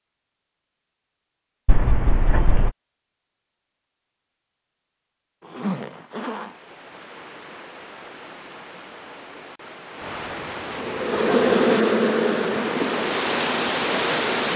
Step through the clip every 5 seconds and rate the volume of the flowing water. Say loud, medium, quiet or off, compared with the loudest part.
off, quiet, loud.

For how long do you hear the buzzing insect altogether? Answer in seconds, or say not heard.
4 s.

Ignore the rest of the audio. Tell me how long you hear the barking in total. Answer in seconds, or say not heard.
not heard.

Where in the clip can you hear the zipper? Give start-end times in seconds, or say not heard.
1.6-2.7, 5.4-6.5, 10.0-11.4.